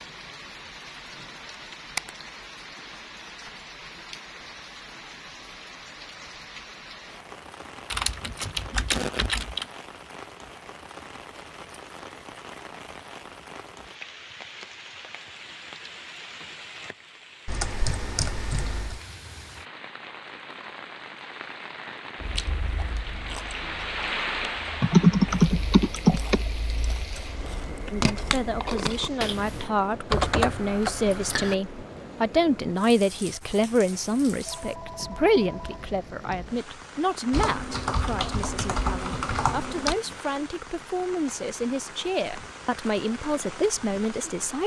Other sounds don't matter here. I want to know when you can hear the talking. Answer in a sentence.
You can hear the talking from 27.9 to 44.6 s.